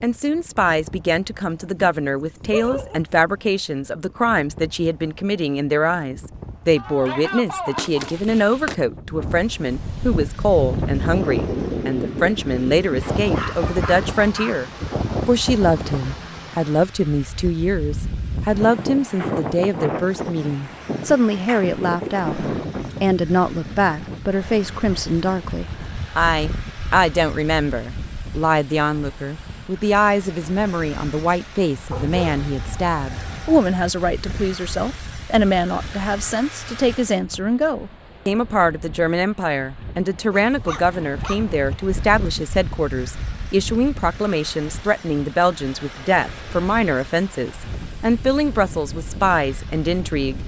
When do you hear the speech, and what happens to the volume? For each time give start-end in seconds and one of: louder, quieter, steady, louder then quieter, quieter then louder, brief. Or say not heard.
0.0-50.4 steady.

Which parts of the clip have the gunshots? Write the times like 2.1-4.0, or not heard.
6.8-8.8.